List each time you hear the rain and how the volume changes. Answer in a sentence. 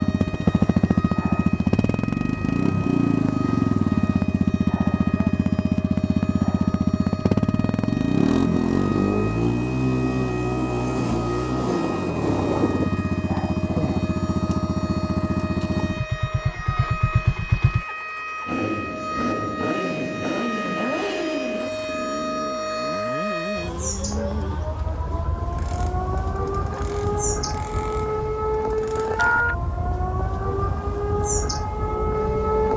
The rain can't be heard in this clip.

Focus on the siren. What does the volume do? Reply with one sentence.
The volume of the siren goes up.